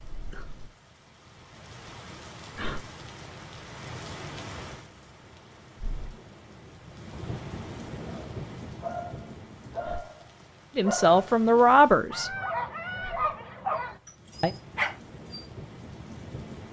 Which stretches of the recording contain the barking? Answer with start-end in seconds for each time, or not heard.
8.0-15.5.